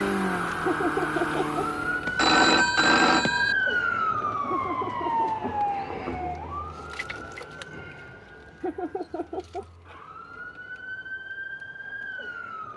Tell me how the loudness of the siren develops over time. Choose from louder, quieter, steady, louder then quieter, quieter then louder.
quieter then louder.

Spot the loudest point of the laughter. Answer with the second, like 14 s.
1 s.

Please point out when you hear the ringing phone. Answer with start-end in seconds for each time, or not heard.
2.0-3.5.